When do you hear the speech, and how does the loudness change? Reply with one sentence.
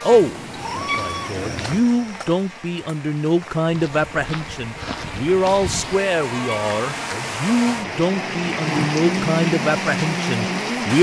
The speech can be heard from 0.0 to 10.9 s, at a steady volume.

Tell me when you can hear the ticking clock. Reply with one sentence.
You can't hear the ticking clock here.